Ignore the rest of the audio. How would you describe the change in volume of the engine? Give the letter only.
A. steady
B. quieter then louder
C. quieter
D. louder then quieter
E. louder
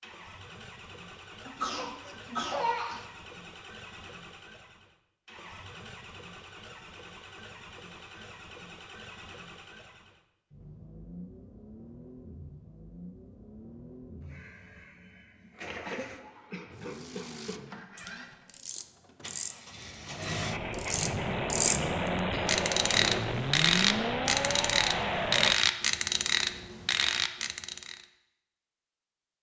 E.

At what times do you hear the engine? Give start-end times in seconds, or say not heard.
0.0-25.6.